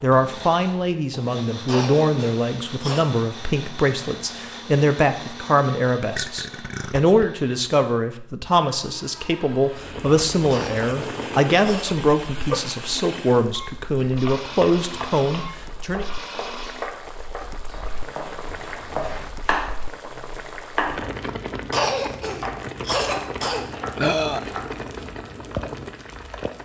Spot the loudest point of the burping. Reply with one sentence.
The loudest moment of the burping is at 24 seconds.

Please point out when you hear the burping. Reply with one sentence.
You can hear the burping from 6.0 to 7.2 s, from 11.9 to 13.3 s and from 23.9 to 24.4 s.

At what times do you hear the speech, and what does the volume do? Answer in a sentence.
The speech can be heard from 0.0 to 16.1 s, at a steady volume.